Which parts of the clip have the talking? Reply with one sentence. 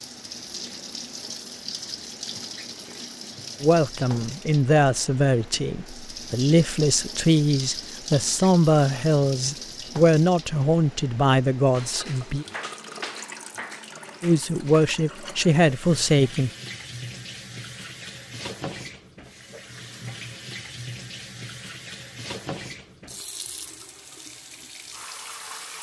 The talking can be heard from 3.6 to 12.4 s and from 14.2 to 16.5 s.